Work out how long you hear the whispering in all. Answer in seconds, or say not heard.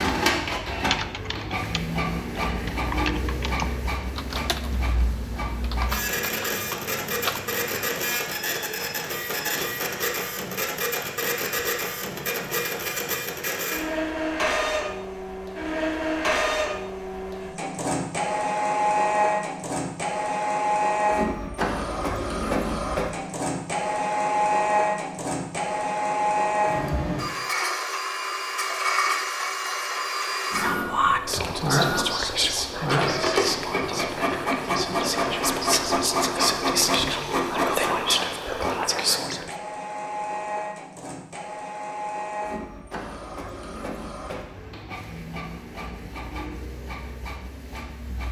9 s.